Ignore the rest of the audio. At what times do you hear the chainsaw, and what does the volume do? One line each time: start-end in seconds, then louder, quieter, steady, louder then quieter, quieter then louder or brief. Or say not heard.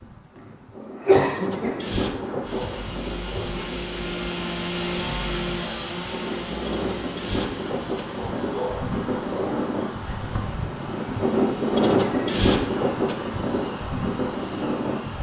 2.4-15.1 quieter.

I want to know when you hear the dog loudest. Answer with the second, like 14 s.
9 s.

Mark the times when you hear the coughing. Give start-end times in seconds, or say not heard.
0.3-1.8.